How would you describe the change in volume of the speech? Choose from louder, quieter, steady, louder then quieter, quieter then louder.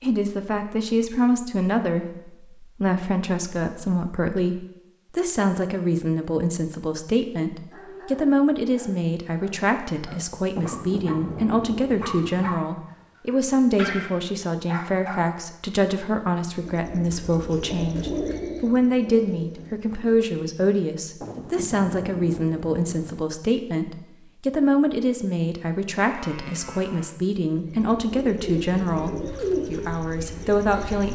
steady.